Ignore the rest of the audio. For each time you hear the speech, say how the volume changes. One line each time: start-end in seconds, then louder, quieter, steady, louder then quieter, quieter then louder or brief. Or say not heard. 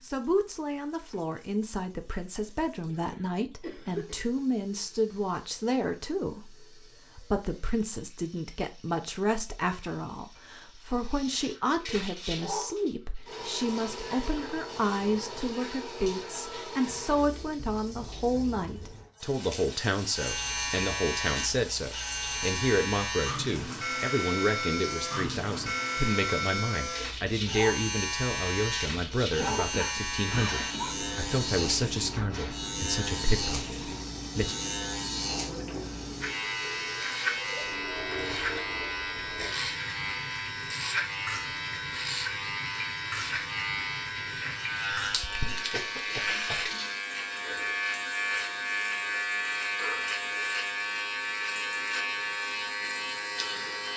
0.0-34.6 steady.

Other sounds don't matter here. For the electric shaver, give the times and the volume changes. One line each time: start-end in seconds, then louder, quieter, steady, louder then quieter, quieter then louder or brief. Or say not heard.
20.1-53.9 steady.